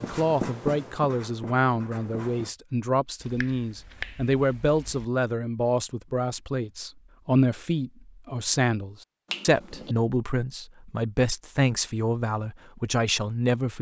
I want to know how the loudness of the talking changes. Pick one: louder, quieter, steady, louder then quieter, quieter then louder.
steady.